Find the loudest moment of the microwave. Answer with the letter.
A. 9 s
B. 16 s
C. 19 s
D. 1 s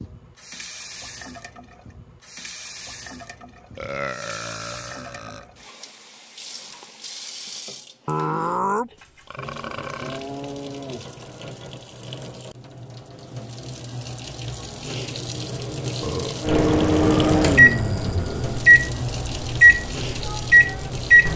C.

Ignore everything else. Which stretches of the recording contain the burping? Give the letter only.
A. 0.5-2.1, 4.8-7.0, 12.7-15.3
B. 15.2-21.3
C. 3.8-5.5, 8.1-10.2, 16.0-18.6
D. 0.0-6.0
C.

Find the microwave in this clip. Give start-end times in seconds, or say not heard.
15.2-21.3.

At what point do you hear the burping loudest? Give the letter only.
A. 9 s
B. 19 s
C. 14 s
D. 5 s
A.